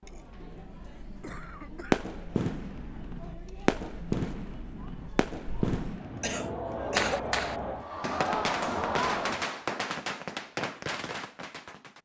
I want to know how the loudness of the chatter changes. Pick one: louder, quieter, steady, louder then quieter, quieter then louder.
louder.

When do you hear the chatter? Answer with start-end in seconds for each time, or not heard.
0.0-9.5.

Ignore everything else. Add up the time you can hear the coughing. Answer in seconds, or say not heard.
2 s.